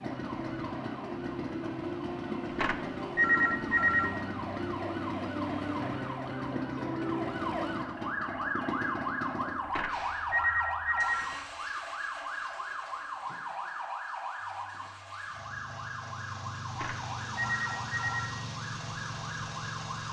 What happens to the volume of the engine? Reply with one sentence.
The volume of the engine goes down, then up.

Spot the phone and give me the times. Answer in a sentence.
The phone can be heard from 2.5 to 4.2 s, from 9.7 to 11.3 s and from 16.7 to 18.4 s.